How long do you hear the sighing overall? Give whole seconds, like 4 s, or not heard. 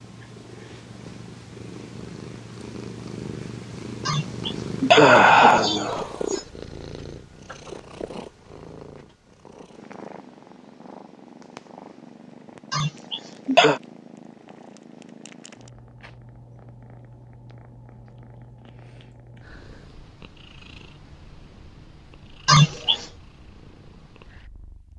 4 s.